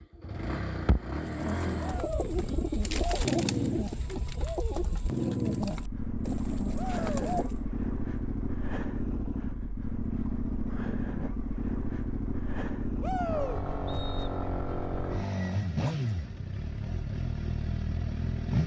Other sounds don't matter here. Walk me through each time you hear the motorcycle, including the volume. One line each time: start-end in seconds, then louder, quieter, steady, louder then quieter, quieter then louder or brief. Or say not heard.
0.0-18.6 steady.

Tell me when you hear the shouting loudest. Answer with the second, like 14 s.
13 s.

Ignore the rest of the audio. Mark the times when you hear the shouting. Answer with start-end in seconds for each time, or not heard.
1.8-2.3, 6.8-7.2, 13.0-13.6.